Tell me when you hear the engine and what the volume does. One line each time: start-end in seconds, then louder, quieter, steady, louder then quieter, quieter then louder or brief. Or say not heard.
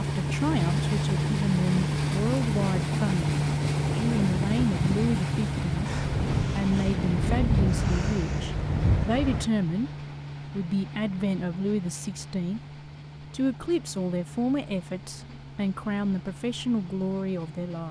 0.0-17.8 quieter.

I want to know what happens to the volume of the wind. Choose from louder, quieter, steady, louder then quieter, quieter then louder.
louder.